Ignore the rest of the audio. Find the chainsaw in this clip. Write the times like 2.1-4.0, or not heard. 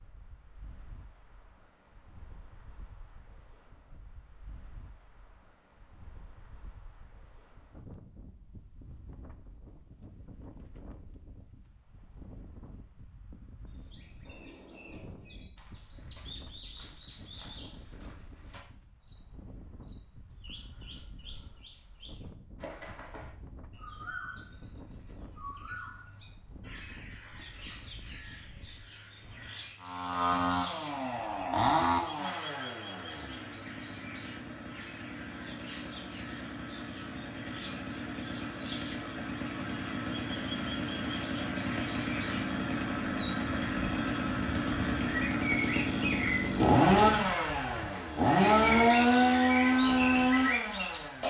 29.8-51.2.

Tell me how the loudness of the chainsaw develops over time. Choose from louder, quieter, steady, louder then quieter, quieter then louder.
quieter then louder.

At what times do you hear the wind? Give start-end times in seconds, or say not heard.
0.0-29.8.